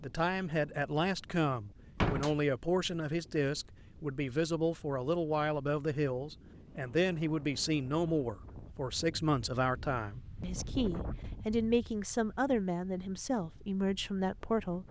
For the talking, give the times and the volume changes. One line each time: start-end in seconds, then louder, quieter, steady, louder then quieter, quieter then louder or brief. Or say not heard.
0.0-14.8 steady.